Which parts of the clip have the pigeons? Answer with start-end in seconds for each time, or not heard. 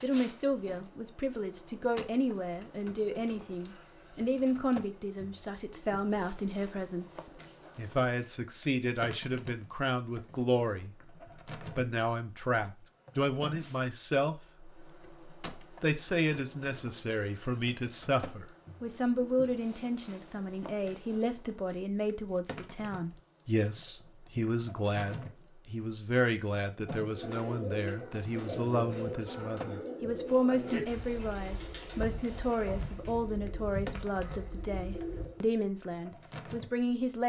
27.0-35.5.